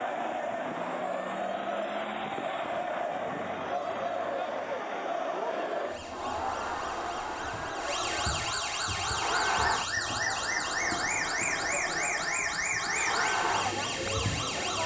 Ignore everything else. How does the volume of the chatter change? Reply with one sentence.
The volume of the chatter stays about the same.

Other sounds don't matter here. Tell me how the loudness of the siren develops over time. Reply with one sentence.
The loudness of the siren goes up.